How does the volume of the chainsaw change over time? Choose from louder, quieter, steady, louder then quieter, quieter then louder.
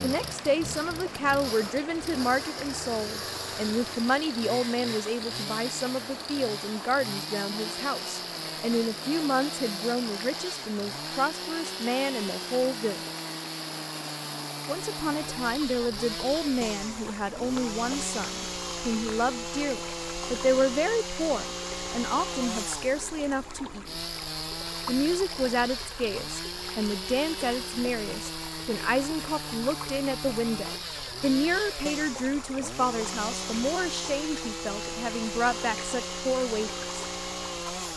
steady.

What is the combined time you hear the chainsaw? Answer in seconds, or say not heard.
38 s.